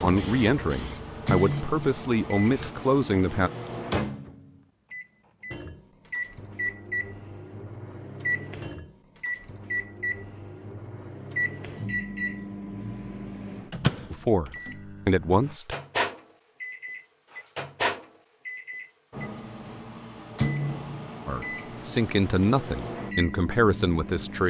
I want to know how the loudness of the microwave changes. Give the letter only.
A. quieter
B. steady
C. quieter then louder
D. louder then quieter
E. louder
B.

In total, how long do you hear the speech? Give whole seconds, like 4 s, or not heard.
8 s.